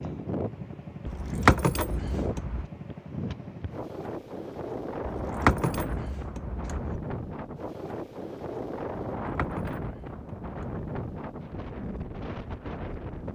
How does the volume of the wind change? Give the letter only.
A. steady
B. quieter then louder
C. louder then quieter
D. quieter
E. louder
A.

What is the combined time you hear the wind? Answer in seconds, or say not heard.
13 s.